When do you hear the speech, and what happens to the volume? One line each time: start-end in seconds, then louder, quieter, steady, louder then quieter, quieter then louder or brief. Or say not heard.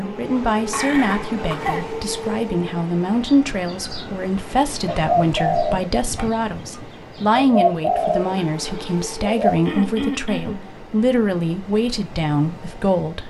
0.0-13.2 steady.